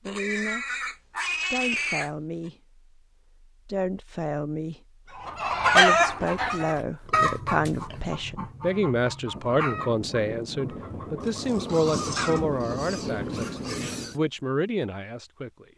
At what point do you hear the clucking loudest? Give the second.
6 s.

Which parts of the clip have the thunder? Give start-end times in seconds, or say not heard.
9.3-14.2.